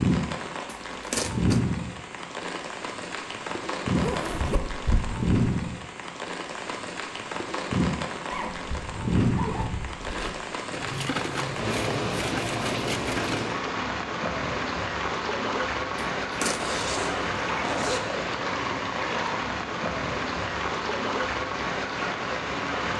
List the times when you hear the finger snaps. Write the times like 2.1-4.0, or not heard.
not heard.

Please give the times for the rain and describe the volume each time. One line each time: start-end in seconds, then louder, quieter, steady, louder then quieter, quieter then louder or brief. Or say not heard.
0.0-22.9 steady.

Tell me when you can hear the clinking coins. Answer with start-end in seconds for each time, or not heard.
0.7-1.6, 10.7-13.4, 16.2-16.7.